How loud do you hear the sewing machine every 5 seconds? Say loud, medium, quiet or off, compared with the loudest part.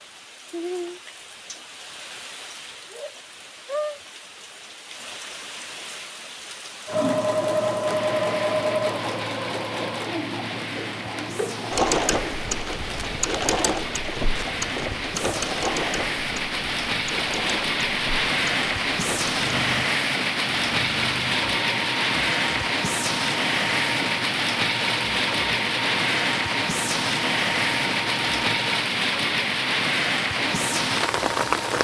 off, loud, loud, medium, medium, medium, medium.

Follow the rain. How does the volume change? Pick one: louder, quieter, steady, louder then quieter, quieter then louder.
louder.